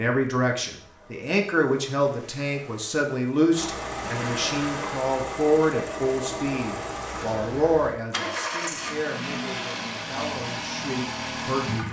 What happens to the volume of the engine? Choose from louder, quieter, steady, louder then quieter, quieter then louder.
louder.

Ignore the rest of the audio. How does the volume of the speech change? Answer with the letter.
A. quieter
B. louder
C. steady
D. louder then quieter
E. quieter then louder
A.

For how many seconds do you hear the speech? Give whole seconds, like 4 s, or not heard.
12 s.